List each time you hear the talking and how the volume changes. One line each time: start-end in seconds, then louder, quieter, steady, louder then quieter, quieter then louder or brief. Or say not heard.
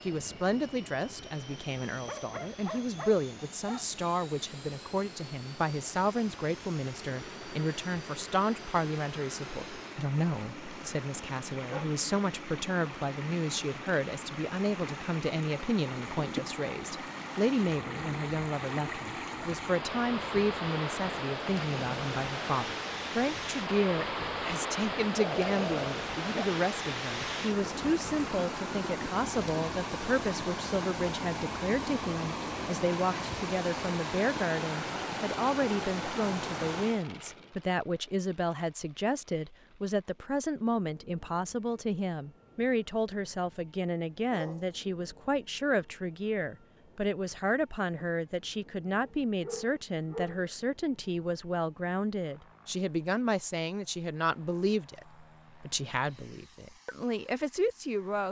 0.0-58.2 steady.